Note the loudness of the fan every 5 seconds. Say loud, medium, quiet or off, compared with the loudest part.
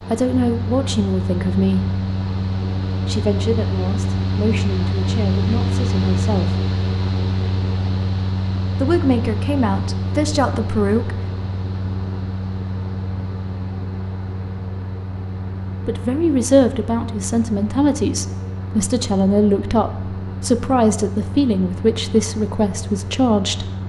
loud, loud, medium, medium, medium.